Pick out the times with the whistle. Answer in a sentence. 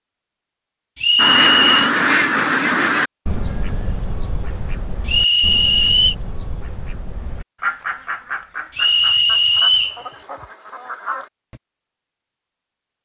You can hear the whistle from 0.9 to 1.9 s, from 5.0 to 6.2 s and from 8.8 to 10.0 s.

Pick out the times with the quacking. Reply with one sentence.
The quacking can be heard from 1.1 to 11.6 s.